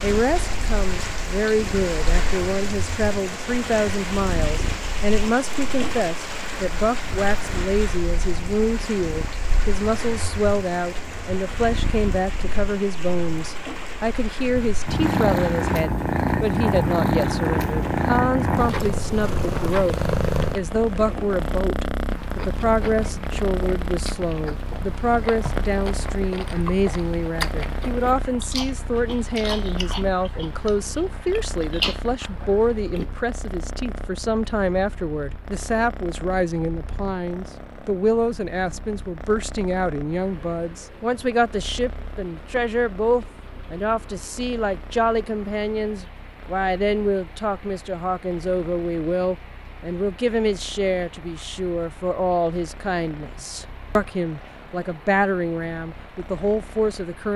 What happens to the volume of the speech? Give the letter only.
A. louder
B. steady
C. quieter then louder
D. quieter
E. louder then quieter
B.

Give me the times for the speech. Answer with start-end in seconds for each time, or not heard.
0.0-57.3.